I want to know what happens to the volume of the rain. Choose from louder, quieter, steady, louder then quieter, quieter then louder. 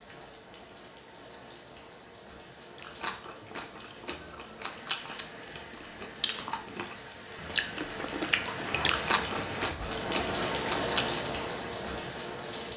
louder.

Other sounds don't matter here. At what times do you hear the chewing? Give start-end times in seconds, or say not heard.
2.8-11.3.